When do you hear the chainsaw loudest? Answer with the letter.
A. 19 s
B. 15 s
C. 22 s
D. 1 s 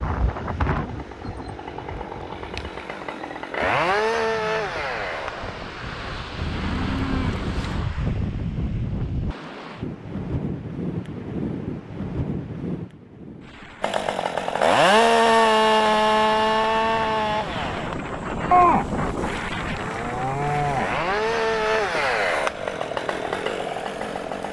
B.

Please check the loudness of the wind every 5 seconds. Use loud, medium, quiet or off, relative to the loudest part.
loud, loud, loud, loud, medium.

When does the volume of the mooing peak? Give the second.
19 s.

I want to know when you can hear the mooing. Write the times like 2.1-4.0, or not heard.
6.3-7.9, 18.5-20.9.